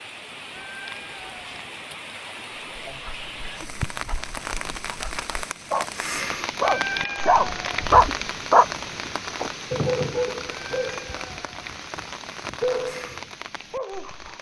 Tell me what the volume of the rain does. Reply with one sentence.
The loudness of the rain goes up, then down.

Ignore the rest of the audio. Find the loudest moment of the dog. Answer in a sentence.
The volume of the dog peaks at 8 seconds.